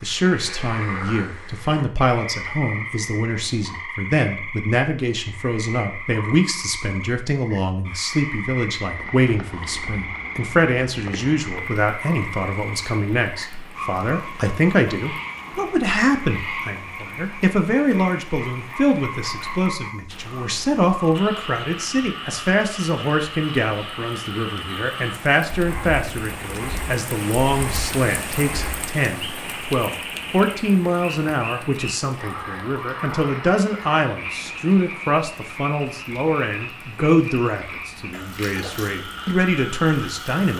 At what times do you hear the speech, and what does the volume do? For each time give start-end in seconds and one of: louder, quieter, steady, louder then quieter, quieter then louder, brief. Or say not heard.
0.0-40.5 steady.